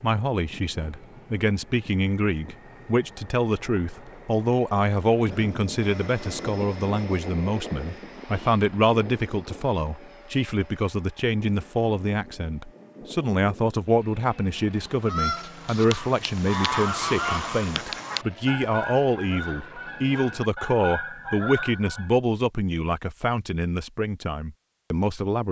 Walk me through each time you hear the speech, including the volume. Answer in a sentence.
You can hear the speech from 0.0 to 25.4 s, at a steady volume.